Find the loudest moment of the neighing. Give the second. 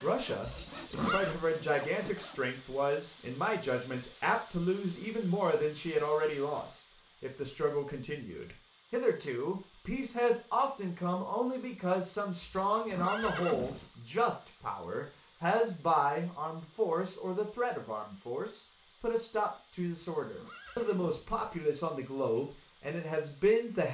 1 s.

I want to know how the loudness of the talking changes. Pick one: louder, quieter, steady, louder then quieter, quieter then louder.
steady.